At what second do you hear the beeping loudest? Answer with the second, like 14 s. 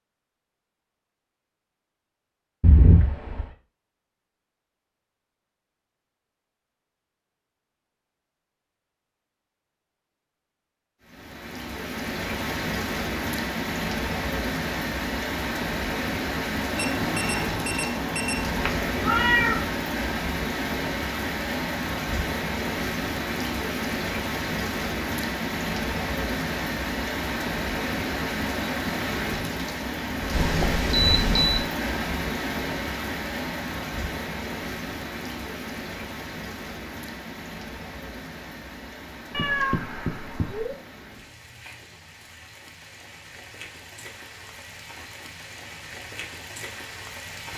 31 s.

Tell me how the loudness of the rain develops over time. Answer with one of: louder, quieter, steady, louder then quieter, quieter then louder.
quieter.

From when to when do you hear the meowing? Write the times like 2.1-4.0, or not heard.
2.6-3.5, 18.6-19.8, 39.3-40.8.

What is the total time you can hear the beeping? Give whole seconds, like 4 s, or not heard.
3 s.